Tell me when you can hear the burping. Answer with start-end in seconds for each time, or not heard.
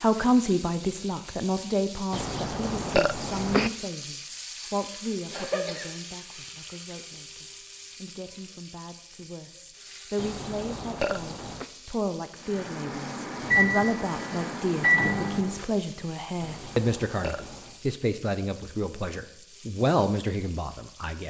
2.1-3.7, 10.2-11.7, 16.4-17.8.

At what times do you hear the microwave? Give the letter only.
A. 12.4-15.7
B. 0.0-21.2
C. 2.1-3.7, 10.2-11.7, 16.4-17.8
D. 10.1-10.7
A.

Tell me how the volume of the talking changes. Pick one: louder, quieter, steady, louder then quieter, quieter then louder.
quieter then louder.